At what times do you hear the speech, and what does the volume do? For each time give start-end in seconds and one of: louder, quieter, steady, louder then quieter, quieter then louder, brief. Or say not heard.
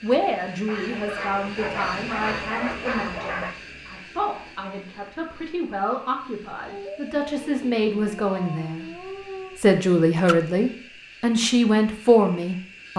0.0-12.9 louder.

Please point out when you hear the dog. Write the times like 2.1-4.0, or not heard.
0.7-3.5, 6.7-9.6.